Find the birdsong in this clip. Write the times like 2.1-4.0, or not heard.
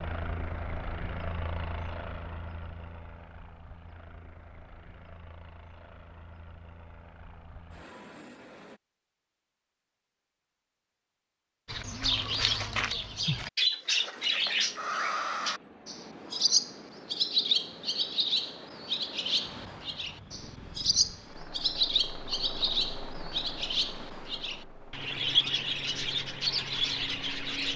11.7-27.7.